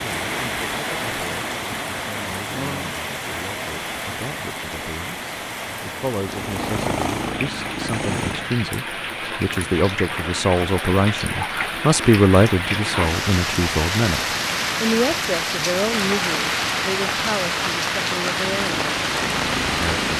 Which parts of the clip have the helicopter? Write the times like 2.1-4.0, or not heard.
6.2-8.5, 18.6-20.1.